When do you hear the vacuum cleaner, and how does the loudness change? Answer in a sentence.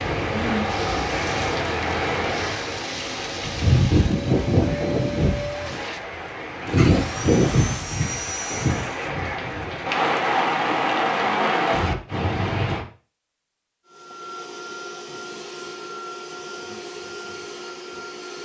You can hear the vacuum cleaner from 0.0 to 9.1 s, at a steady volume; and from 13.8 to 18.4 s, at a steady volume.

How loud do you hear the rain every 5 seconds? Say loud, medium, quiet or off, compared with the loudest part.
loud, loud, loud, off.